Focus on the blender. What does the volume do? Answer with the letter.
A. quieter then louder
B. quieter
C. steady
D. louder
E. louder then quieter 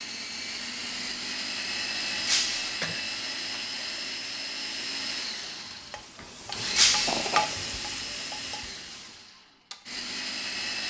B.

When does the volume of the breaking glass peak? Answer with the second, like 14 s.
7 s.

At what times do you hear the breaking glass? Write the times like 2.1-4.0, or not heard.
2.2-2.8, 6.8-7.2.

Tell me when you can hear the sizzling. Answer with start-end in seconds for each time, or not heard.
5.7-9.3.